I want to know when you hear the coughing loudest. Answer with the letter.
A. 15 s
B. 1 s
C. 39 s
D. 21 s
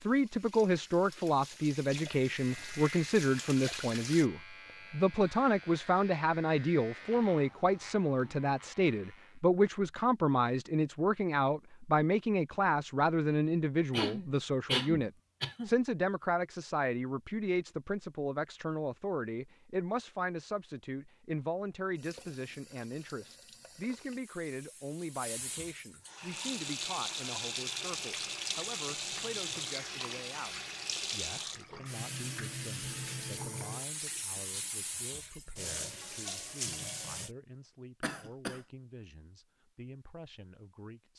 A.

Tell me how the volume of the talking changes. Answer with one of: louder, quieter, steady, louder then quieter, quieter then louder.
quieter.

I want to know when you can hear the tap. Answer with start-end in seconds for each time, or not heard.
0.0-4.3, 21.9-37.3.